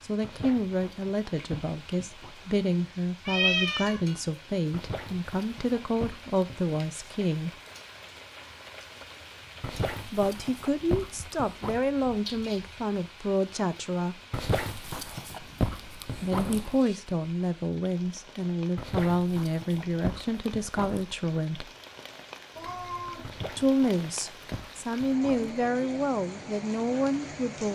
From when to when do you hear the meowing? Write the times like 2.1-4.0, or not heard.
3.2-4.0, 11.8-12.9, 22.6-23.4.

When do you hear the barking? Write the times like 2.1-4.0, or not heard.
0.2-2.4, 4.7-6.8, 9.6-11.8, 14.3-16.8, 18.8-21.1, 23.2-25.6.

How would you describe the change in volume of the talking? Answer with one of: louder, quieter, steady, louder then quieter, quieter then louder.
steady.